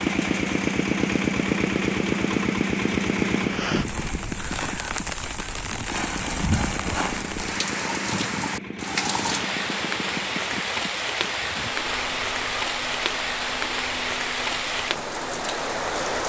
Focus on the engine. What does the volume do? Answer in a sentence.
The loudness of the engine goes down.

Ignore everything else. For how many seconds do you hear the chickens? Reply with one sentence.
You can't hear the chickens here.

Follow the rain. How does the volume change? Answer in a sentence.
The volume of the rain goes up.